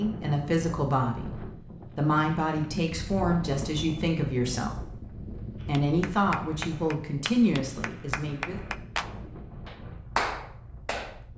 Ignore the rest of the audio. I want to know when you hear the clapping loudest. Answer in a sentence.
The loudest moment of the clapping is at 10 seconds.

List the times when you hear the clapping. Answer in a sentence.
The clapping can be heard from 5.6 to 11.2 s.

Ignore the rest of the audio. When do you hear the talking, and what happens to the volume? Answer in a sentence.
You can hear the talking from 0.0 to 8.6 s, at a steady volume.